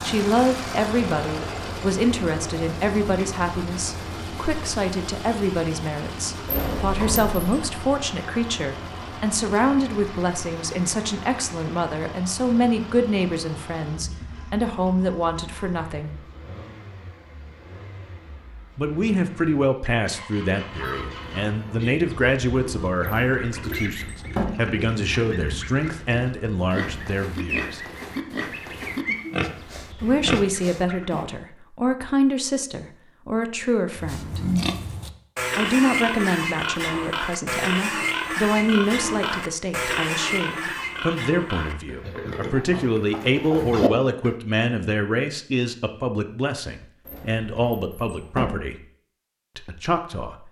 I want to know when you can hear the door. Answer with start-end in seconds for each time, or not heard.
6.5-7.3, 23.1-24.4, 47.0-48.5.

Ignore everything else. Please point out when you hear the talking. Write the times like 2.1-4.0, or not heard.
0.0-16.2, 18.8-27.9, 30.0-34.4, 35.5-48.8, 49.5-50.4.